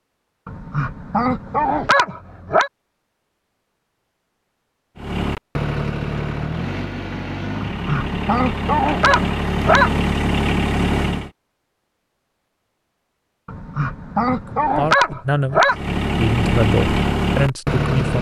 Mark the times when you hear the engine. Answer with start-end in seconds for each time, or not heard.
5.0-11.3, 15.7-18.1.